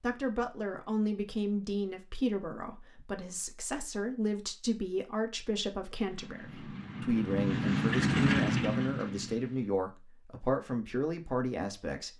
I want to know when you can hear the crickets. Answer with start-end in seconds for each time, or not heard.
not heard.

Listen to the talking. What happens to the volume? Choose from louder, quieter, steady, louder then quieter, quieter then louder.
steady.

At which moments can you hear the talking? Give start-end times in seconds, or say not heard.
0.0-12.1.